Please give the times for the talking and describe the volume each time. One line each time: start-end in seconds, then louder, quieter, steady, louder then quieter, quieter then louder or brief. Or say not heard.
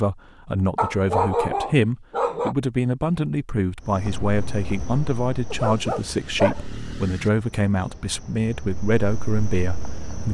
0.0-10.2 steady.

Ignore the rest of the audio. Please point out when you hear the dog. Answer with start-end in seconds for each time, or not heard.
0.8-2.5, 5.5-7.3.